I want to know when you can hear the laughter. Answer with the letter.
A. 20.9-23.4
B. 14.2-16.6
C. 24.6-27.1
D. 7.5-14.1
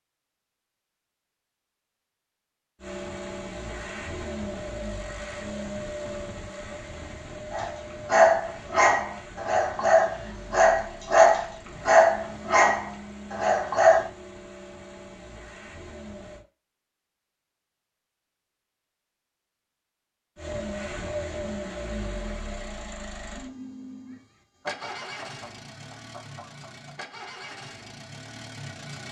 C.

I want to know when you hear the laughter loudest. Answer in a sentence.
The volume of the laughter peaks at 25 seconds.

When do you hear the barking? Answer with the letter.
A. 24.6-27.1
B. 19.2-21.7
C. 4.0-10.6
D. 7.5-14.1
D.